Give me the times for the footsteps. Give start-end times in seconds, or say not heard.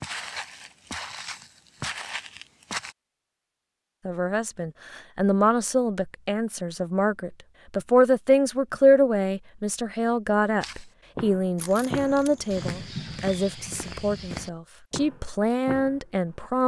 0.0-3.0, 10.6-16.4.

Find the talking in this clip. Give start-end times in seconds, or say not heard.
4.0-16.6.